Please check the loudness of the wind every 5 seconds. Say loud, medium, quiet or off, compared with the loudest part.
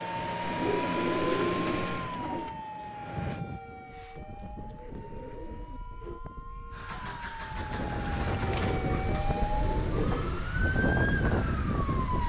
medium, medium, loud.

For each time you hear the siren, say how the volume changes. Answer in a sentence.
You can hear the siren from 0.0 to 12.2 s, getting quieter then louder.